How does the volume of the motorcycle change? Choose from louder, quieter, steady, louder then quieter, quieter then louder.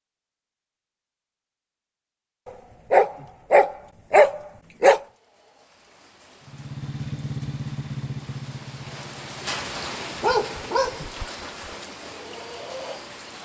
quieter.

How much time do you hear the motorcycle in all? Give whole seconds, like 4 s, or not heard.
4 s.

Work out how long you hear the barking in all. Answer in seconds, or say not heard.
3 s.